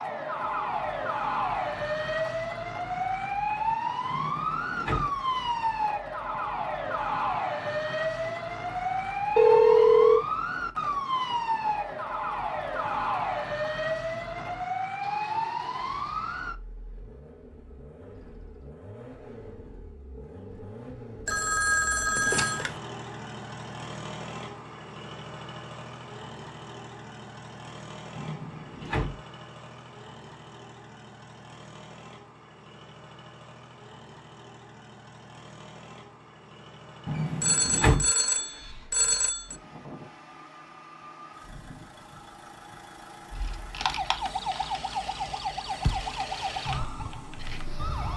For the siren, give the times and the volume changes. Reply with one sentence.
The siren can be heard from 0.0 to 16.6 s, at a steady volume; and from 43.3 to 48.1 s, getting quieter.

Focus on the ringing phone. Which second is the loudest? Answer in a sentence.
The volume of the ringing phone peaks at 10 seconds.